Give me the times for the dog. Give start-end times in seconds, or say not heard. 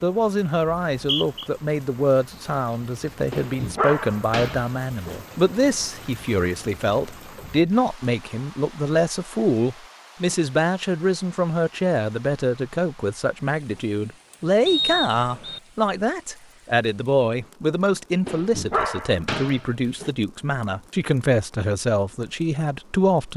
3.3-5.2, 18.2-20.1.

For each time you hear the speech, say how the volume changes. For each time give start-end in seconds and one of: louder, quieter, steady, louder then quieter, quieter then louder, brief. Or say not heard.
0.0-23.3 steady.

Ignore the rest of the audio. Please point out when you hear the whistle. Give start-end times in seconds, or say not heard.
0.9-1.4, 14.7-15.6.